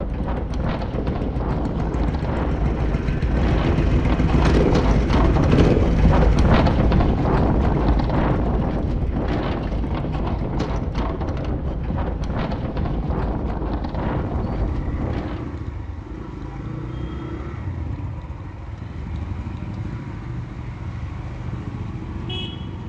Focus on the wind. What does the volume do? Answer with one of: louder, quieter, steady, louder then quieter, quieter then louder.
louder then quieter.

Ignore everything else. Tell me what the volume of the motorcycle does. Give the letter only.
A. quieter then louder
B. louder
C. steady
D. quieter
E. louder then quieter
D.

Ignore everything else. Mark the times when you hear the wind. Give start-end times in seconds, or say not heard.
0.0-15.6.